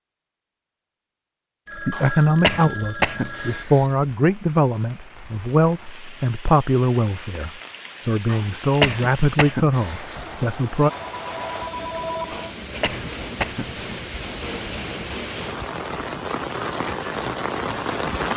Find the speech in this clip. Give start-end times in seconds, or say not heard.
1.8-10.9.